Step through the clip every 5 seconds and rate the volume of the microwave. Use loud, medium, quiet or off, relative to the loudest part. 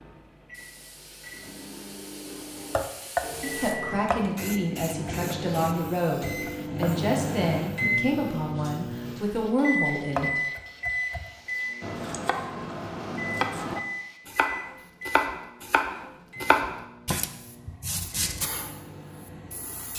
medium, loud, loud, quiet.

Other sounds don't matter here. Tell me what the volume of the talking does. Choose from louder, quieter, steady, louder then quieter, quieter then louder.
steady.